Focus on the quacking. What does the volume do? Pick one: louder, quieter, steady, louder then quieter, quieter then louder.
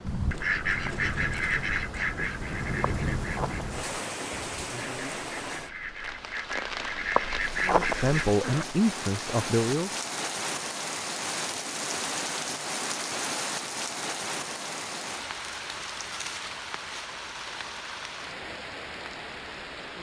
quieter then louder.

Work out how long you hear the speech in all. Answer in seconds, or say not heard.
2 s.